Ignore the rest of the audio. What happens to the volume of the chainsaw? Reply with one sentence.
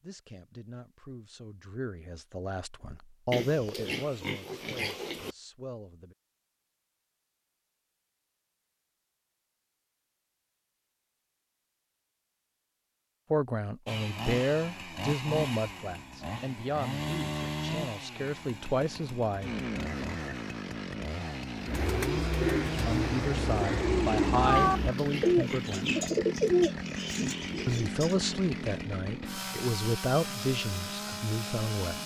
The volume of the chainsaw stays about the same.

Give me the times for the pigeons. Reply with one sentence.
The pigeons can be heard from 21.6 to 28.1 s.